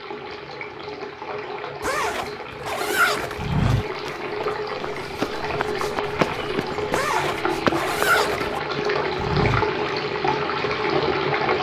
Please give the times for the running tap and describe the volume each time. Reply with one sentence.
The running tap can be heard from 0.0 to 11.5 s, getting louder.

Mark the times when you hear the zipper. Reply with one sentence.
The zipper can be heard from 1.8 to 3.4 s and from 6.9 to 8.6 s.